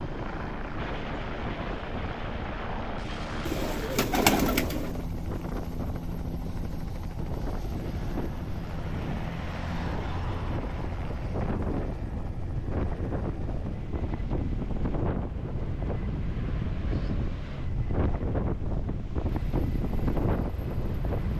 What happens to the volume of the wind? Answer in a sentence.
The volume of the wind goes up.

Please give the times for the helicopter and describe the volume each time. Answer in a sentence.
The helicopter can be heard from 0.0 to 21.3 s, getting quieter.